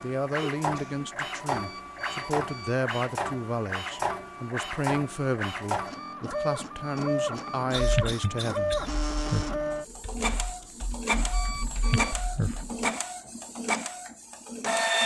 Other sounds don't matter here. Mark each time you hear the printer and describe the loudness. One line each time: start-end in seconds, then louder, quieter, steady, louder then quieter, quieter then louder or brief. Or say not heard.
0.0-15.0 steady.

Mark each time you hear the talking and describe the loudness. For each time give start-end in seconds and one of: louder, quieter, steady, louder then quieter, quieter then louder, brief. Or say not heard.
0.0-8.8 steady.